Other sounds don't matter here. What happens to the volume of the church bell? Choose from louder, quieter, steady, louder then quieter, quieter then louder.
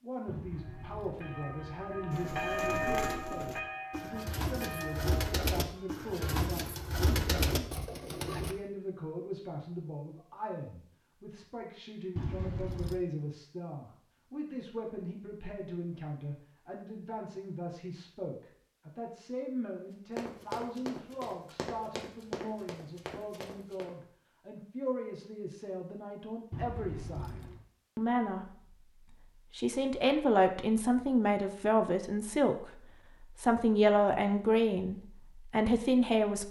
louder then quieter.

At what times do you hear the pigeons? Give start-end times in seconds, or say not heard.
2.1-8.6.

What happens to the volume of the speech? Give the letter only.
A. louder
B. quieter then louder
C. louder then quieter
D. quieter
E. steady
A.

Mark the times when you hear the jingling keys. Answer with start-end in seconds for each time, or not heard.
0.2-2.2, 12.2-13.0, 26.5-27.6.